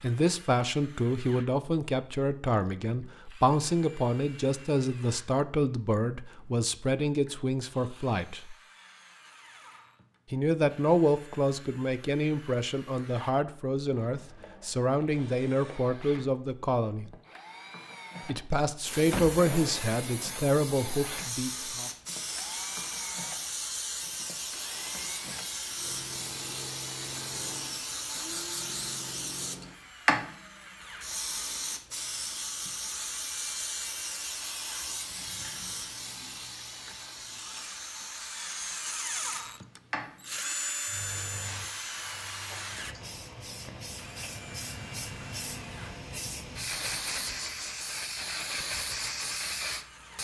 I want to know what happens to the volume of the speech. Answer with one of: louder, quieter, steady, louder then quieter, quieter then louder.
steady.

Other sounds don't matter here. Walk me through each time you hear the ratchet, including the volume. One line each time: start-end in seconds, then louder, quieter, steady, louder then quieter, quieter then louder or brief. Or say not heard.
not heard.